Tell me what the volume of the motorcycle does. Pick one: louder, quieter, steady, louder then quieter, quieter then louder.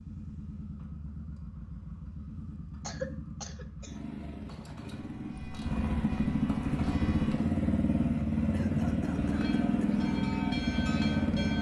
louder.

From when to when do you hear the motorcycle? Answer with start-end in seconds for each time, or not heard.
0.0-11.5.